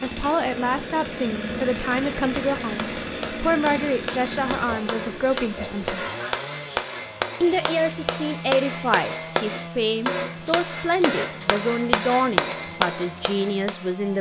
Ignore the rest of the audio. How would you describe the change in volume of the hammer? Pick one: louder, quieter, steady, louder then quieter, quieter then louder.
louder.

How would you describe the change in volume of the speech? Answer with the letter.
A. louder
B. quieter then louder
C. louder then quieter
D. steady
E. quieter
D.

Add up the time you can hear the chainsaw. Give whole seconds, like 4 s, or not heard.
14 s.